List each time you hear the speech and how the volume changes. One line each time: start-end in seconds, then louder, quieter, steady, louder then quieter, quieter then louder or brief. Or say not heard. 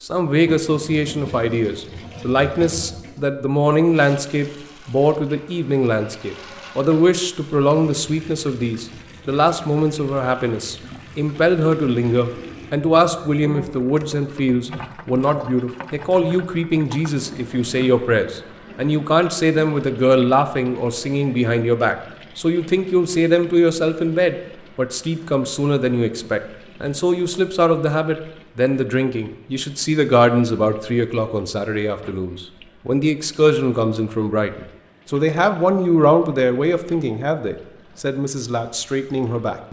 0.0-39.6 steady.